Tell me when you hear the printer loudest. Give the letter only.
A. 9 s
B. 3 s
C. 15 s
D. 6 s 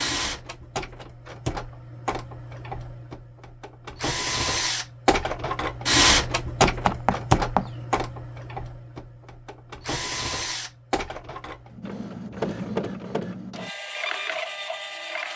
D.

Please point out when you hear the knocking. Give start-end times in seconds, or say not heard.
6.7-7.7.